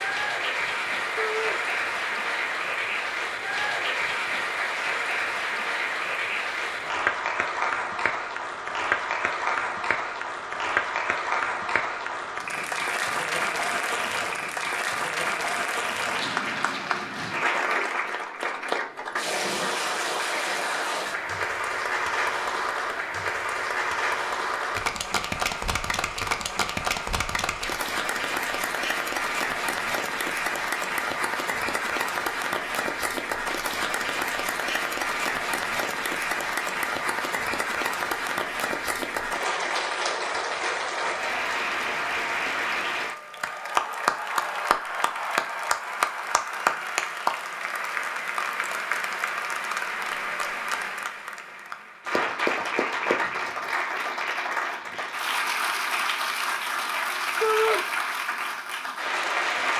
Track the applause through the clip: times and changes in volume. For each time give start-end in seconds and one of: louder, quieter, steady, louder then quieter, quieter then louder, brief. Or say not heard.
0.0-59.7 steady.